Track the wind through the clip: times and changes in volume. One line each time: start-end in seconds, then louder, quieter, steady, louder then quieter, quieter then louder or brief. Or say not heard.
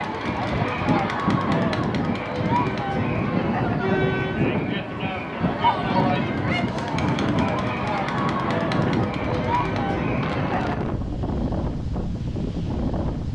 0.0-13.2 steady.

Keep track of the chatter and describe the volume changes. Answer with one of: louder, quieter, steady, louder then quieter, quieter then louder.
steady.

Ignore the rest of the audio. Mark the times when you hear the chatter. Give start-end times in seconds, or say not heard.
0.0-10.8.